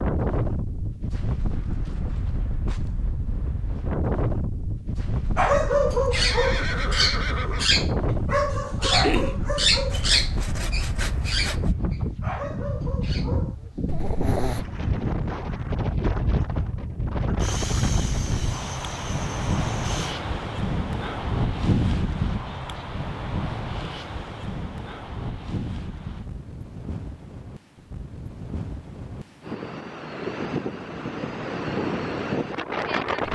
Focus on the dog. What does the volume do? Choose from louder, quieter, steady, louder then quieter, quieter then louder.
quieter.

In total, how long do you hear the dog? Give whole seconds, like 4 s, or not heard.
9 s.